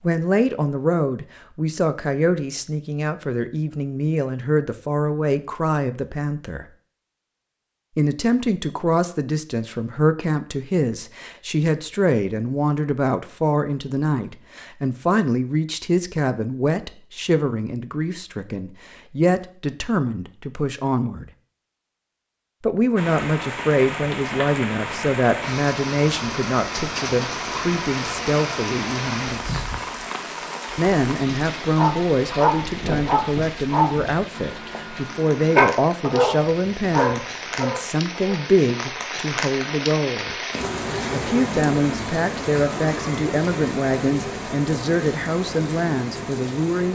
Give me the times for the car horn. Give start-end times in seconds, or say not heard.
not heard.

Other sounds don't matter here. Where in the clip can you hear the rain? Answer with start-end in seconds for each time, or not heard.
22.9-46.9.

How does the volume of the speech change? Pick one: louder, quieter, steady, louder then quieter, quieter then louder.
steady.